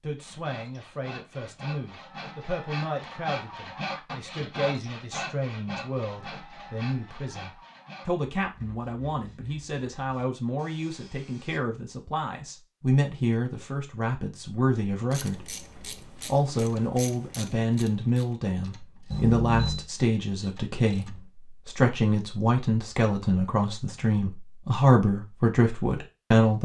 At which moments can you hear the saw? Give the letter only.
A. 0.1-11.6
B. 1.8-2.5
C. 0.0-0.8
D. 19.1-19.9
A.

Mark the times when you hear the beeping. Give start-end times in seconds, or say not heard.
19.1-19.9.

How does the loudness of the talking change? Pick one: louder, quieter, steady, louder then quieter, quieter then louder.
louder.